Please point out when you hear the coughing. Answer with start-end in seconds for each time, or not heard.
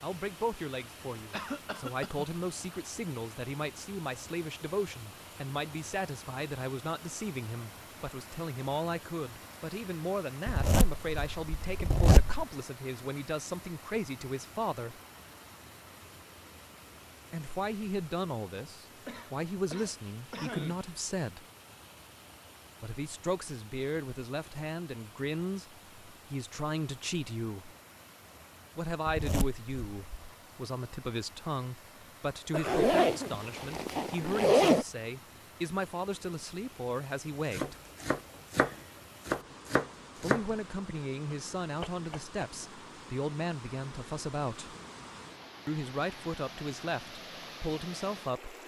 1.3-2.3, 19.1-20.9, 32.5-33.4.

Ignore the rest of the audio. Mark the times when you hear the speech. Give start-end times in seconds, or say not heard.
0.0-15.0, 17.3-21.4, 22.8-27.8, 28.8-37.8, 40.1-44.8, 45.6-48.5.